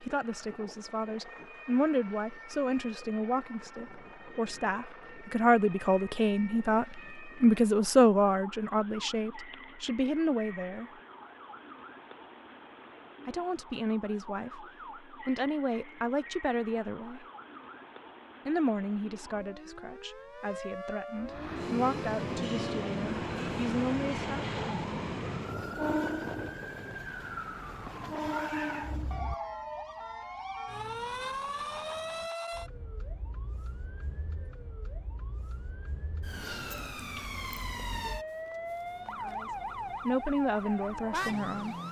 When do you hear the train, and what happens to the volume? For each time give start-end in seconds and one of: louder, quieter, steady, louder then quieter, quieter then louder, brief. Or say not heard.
21.2-29.2 steady.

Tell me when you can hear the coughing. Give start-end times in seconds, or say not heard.
not heard.